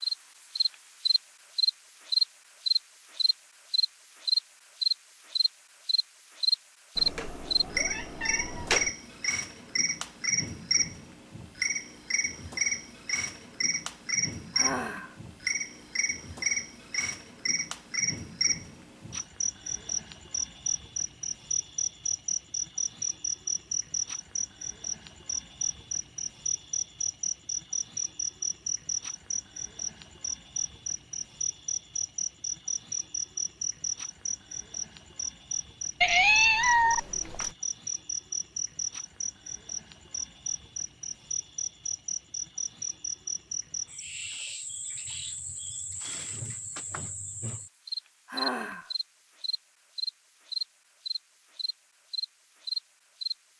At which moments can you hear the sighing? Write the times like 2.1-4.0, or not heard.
14.6-15.2, 48.2-48.9.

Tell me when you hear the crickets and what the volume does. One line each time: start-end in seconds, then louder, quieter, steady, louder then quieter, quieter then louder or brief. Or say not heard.
0.0-53.5 quieter.